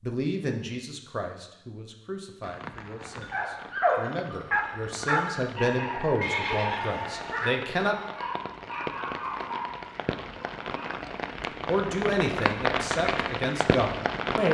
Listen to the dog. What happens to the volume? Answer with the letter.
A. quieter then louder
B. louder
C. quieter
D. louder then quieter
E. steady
C.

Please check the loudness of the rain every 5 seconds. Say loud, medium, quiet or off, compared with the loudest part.
quiet, medium, loud.